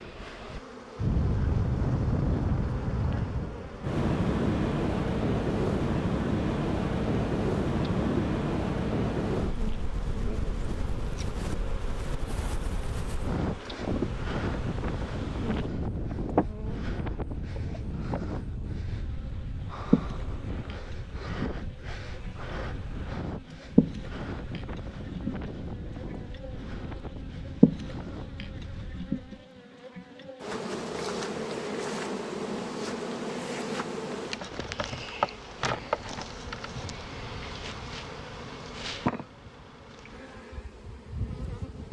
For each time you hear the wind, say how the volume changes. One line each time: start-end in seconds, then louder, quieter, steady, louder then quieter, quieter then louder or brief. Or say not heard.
0.0-29.4 quieter.